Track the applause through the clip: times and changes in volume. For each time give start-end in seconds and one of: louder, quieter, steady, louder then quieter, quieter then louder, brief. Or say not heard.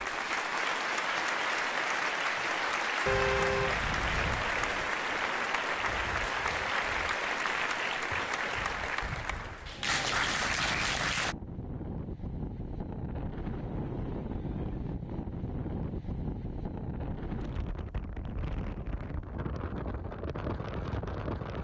0.0-11.3 steady.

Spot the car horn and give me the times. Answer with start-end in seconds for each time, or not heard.
3.0-4.3.